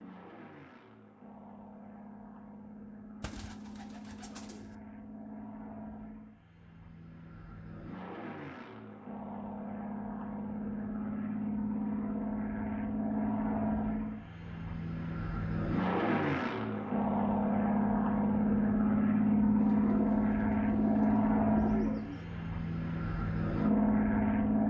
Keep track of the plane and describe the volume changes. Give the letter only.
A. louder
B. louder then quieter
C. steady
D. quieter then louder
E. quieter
A.